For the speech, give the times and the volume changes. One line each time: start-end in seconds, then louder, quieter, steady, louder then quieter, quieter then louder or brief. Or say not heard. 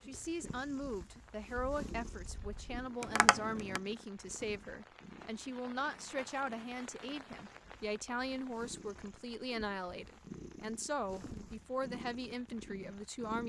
0.1-13.4 steady.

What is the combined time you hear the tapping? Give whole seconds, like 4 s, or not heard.
2 s.